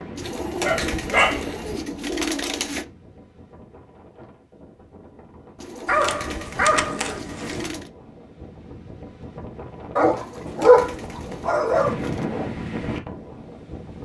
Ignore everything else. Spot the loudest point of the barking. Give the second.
11 s.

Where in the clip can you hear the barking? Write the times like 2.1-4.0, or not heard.
0.2-1.6, 5.8-7.6, 9.9-11.9.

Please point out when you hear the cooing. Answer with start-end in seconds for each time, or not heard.
0.1-2.9, 5.5-7.9, 10.2-12.2.